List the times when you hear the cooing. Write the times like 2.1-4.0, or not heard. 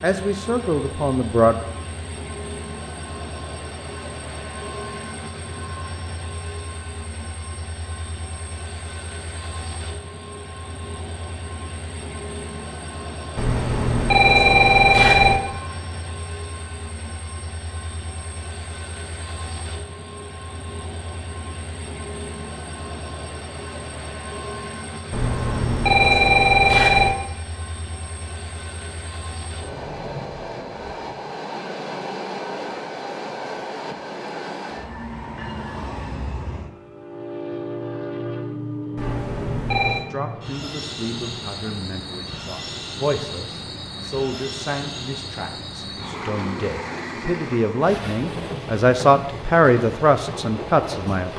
not heard.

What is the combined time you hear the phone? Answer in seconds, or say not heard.
5 s.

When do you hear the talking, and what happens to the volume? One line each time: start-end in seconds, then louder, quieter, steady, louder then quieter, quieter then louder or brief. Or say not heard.
0.0-1.6 brief
40.0-51.3 louder.